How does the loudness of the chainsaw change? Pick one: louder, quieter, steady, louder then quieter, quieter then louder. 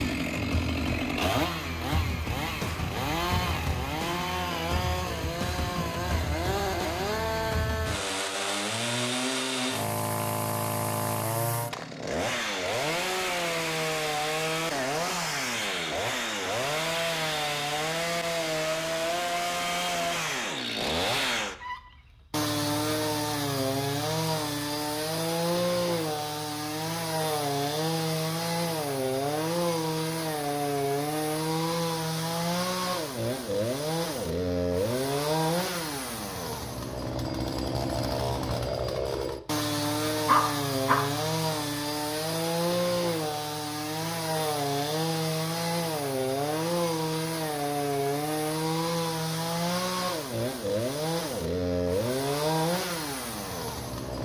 steady.